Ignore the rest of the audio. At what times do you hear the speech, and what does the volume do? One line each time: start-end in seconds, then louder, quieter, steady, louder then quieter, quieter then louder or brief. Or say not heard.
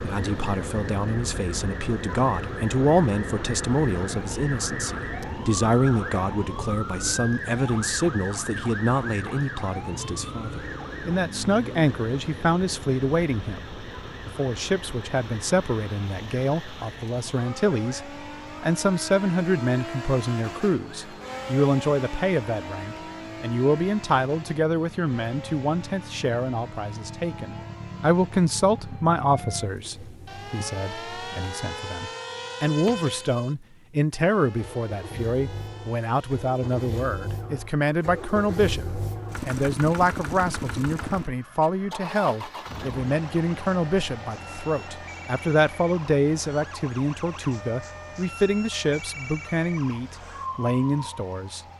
0.0-51.6 steady.